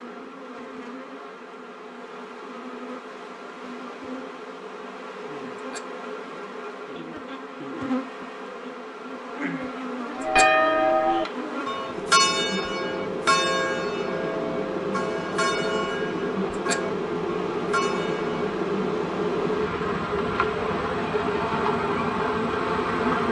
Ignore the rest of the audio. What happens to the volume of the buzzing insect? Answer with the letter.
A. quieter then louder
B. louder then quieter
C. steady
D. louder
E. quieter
D.